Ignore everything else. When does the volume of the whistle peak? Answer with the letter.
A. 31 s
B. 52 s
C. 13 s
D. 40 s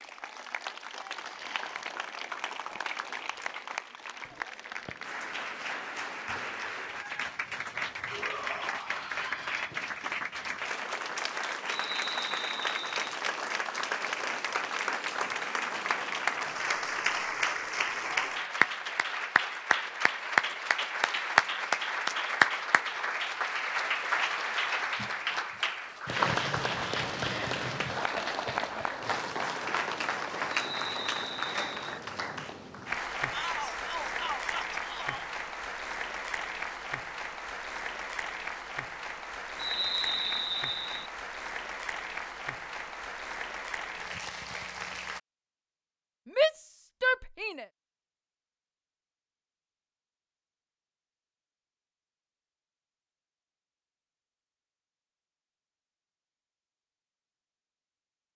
D.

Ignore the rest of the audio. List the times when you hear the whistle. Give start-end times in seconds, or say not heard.
11.7-13.1, 30.5-32.0, 39.5-41.1.